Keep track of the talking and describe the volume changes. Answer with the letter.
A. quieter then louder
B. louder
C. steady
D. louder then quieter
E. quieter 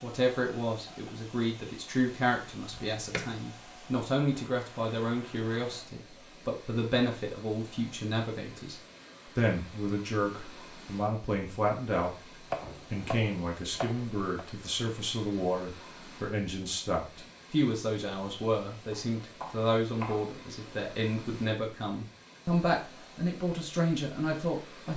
C.